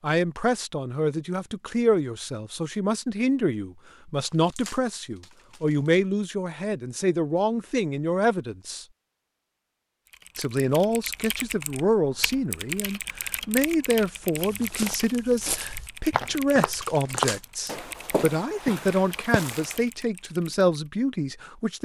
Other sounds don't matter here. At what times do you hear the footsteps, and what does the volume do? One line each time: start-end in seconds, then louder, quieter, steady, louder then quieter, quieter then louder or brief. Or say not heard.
14.3-19.8 louder then quieter.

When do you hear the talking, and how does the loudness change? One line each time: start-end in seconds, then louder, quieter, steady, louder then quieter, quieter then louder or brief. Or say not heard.
0.0-8.8 steady
10.3-21.8 steady.